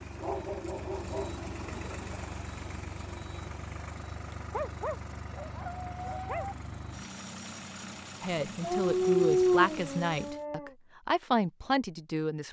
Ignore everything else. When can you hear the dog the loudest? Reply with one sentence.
The volume of the dog peaks at 9 seconds.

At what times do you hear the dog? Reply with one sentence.
You can hear the dog from 0.1 to 2.1 s, from 4.5 to 6.5 s and from 8.6 to 10.7 s.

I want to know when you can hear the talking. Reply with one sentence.
The talking can be heard from 8.2 to 12.4 s.